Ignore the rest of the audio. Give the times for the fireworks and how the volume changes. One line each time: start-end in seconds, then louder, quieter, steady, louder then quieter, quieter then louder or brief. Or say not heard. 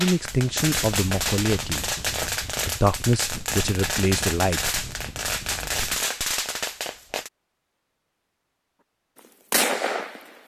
0.0-7.3 steady
9.2-10.4 brief.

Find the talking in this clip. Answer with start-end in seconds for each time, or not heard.
0.0-1.9, 2.6-4.8.